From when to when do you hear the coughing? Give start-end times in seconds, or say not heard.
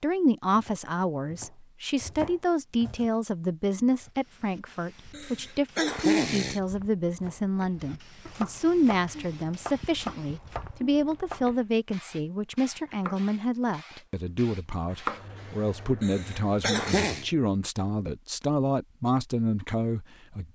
5.1-6.6, 16.0-17.2.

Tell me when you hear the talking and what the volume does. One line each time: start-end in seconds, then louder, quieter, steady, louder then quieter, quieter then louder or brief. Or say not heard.
0.0-20.4 steady.